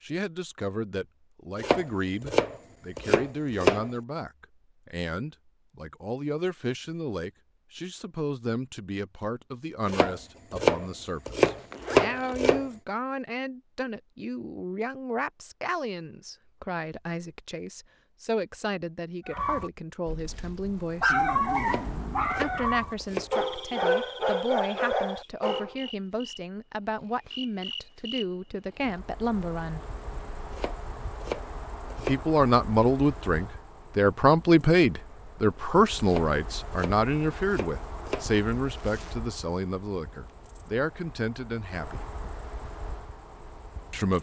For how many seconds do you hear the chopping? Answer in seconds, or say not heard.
11 s.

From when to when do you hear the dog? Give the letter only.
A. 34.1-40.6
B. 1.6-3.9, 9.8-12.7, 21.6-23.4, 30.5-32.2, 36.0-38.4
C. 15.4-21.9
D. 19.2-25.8
D.